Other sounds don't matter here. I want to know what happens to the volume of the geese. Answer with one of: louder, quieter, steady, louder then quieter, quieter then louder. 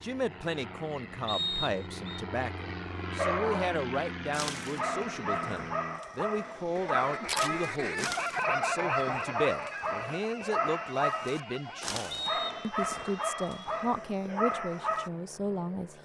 quieter.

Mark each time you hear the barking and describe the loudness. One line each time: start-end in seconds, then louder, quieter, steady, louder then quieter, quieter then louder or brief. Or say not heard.
3.1-15.1 steady.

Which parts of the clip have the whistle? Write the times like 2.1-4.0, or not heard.
1.2-2.2, 12.1-12.7.